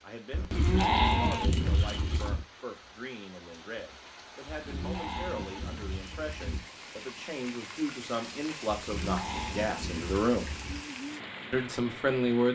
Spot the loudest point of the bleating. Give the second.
1 s.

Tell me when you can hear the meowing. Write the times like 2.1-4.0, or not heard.
not heard.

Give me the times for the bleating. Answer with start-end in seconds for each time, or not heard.
0.3-2.5, 4.5-6.7, 8.8-10.8.